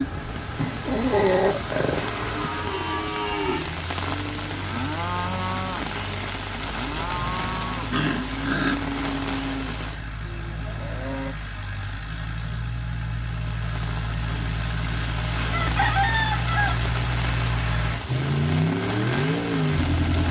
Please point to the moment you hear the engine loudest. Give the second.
19 s.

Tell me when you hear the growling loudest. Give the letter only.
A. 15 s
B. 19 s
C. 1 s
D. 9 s
C.